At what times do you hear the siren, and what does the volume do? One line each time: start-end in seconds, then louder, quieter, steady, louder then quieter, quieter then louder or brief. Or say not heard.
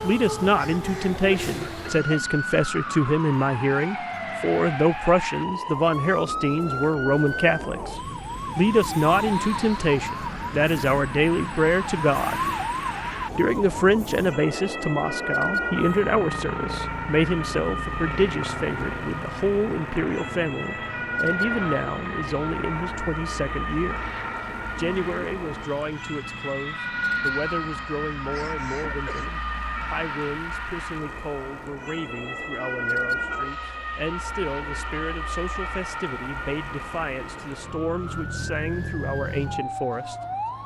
0.0-40.6 steady.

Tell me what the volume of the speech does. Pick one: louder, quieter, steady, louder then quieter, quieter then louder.
quieter.